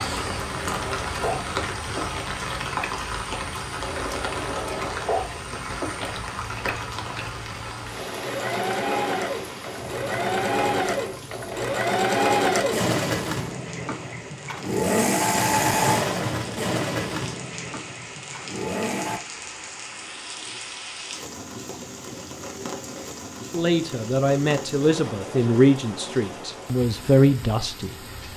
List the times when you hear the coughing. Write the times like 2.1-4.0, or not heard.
not heard.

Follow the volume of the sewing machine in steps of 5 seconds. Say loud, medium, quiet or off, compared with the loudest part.
medium, medium, loud, loud, off, off.